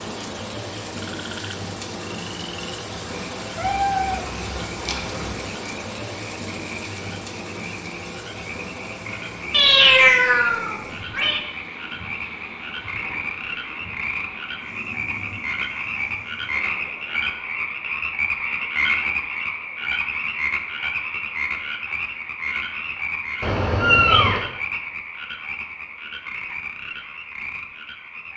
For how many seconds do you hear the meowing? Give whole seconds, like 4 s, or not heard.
5 s.